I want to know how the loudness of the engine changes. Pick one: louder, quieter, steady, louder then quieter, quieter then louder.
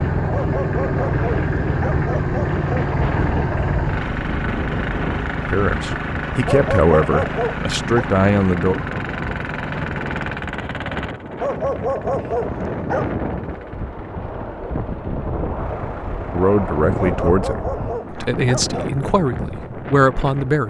quieter.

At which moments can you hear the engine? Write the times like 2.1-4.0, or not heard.
0.0-17.2.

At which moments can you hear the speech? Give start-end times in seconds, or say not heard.
5.5-8.8, 16.3-20.6.